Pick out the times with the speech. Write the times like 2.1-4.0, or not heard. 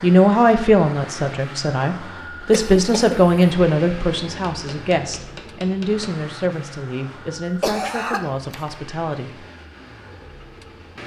0.0-9.4.